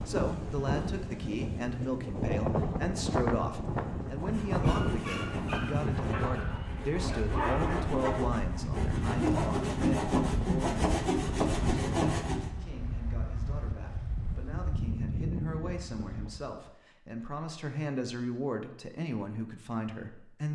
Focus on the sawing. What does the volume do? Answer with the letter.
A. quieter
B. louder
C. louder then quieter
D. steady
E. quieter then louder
B.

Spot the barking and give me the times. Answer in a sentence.
You can hear the barking from 4.6 to 8.0 s.